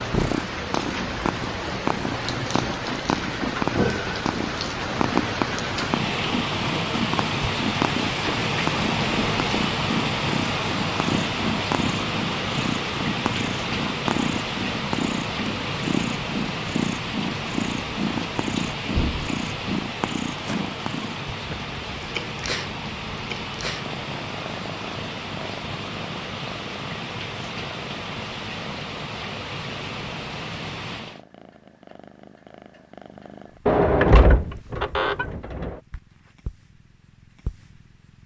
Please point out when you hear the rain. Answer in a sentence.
The rain can be heard from 0.0 to 31.2 s.